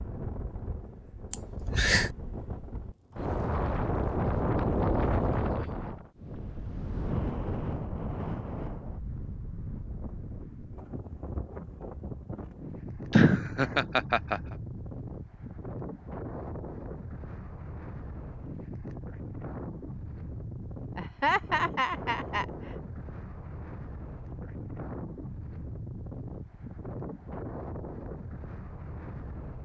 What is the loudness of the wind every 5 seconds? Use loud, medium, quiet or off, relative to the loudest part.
loud, loud, medium, medium, medium, medium.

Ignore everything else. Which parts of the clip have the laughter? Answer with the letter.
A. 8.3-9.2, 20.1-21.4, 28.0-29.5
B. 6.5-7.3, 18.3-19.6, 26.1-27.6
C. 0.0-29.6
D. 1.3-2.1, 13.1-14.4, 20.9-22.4
D.